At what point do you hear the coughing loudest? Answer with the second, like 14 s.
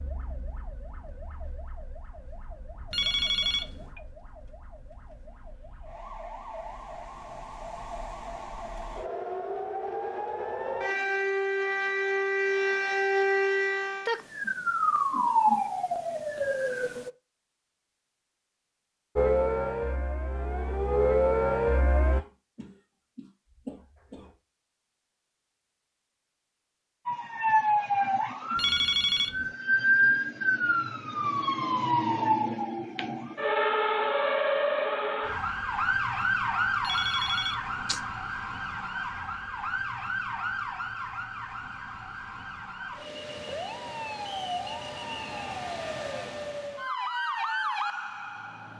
24 s.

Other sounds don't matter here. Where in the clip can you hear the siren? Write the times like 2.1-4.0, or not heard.
0.0-17.1, 19.1-22.2, 27.1-48.7.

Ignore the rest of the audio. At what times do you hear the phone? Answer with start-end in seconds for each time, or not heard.
2.9-3.9, 28.6-29.5, 36.8-38.0.